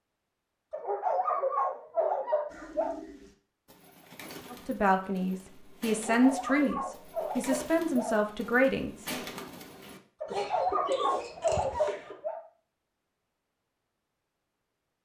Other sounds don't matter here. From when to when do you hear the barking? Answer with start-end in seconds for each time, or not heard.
0.7-3.0, 5.9-8.2, 10.2-12.4.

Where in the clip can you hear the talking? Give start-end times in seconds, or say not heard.
4.5-9.1.